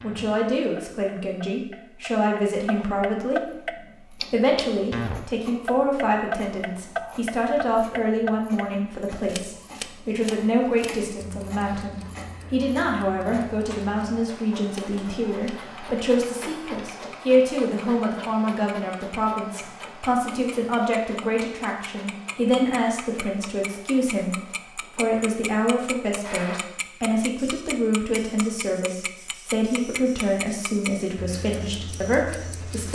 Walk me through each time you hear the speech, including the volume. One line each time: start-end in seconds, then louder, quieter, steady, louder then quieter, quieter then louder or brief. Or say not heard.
0.0-32.9 steady.